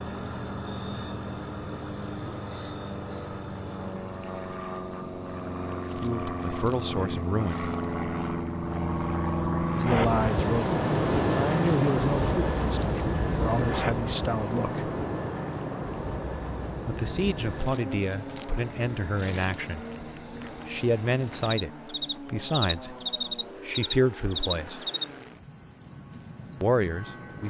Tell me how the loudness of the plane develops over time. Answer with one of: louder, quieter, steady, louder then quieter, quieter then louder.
louder then quieter.